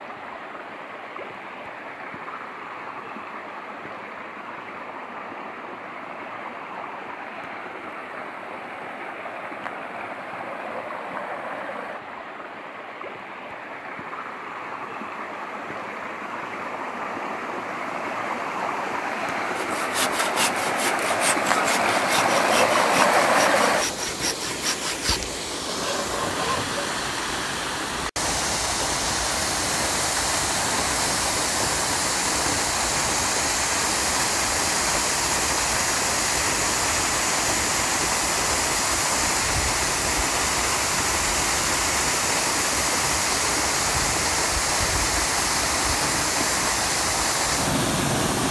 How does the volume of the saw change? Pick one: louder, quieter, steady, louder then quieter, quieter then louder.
steady.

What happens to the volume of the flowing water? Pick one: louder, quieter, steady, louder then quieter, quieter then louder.
louder.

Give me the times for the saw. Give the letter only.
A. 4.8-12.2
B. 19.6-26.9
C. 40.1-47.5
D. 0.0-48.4
B.